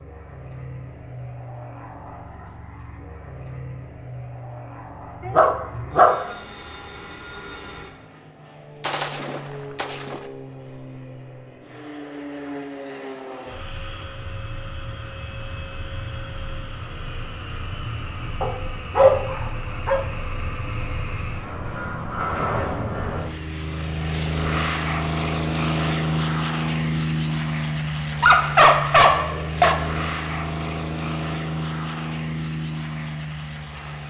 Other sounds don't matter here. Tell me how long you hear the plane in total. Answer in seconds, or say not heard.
34 s.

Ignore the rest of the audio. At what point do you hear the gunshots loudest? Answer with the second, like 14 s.
9 s.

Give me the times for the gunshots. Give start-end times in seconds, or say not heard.
8.8-10.3.